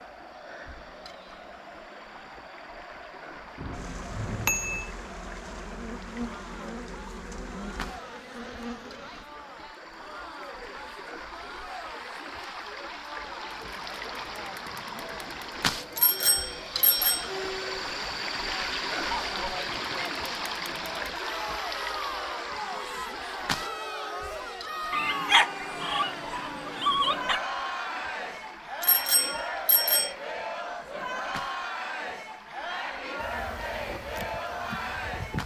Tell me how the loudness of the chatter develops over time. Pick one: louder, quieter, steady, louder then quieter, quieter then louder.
louder.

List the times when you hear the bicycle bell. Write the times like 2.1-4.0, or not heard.
3.5-4.9, 15.9-17.3, 28.8-30.1.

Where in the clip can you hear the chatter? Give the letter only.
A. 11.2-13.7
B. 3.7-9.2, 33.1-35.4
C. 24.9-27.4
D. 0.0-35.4
D.